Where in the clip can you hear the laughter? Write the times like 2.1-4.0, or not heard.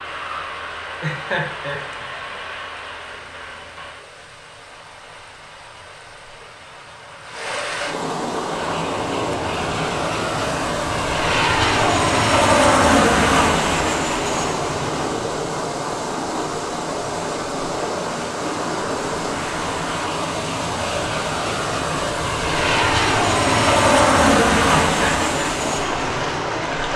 1.0-2.4, 24.9-25.5.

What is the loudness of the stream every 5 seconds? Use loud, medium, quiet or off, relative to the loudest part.
quiet, loud, loud, loud, loud, loud.